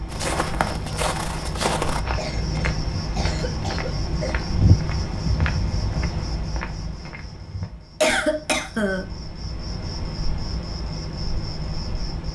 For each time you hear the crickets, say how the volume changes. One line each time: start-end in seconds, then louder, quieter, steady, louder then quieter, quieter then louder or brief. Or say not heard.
0.0-12.3 quieter then louder.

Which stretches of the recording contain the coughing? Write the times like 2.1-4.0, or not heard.
2.1-4.5, 8.0-9.1.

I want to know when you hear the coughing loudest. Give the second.
8 s.